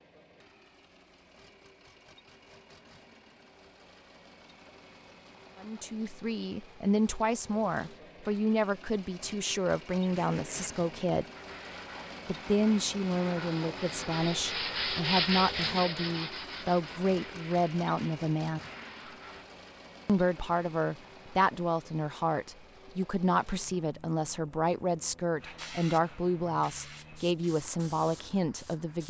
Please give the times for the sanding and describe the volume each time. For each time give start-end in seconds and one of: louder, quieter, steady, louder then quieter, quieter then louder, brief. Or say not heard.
10.0-19.6 louder then quieter.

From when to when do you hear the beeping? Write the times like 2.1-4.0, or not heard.
not heard.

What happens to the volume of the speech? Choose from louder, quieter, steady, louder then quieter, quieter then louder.
steady.